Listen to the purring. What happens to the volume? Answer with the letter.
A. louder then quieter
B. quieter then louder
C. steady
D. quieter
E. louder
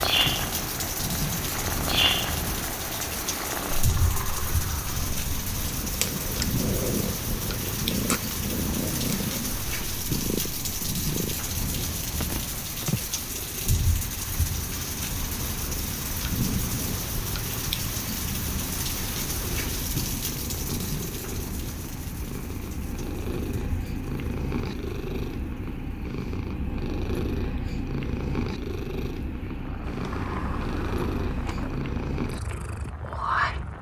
B.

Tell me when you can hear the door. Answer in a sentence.
The door can be heard from 3.7 to 5.1 s and from 29.8 to 31.8 s.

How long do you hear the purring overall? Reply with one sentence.
You can hear the purring for 34 seconds altogether.